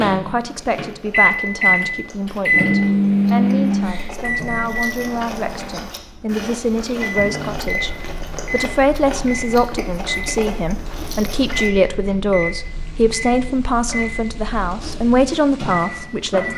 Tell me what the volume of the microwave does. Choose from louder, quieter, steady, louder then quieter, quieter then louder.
quieter.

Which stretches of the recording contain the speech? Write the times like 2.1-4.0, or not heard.
0.0-16.5.